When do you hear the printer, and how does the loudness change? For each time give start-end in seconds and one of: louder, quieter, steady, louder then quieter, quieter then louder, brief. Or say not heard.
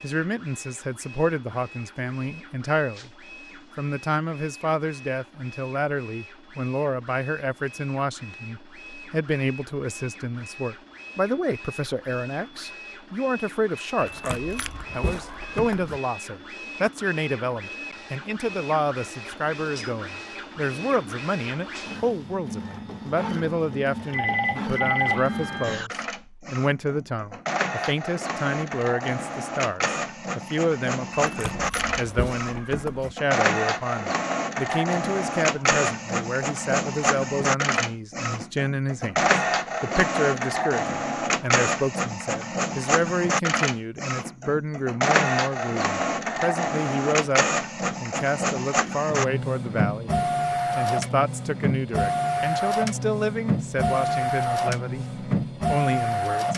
0.0-56.5 louder.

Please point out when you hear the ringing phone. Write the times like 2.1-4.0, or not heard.
24.1-25.9.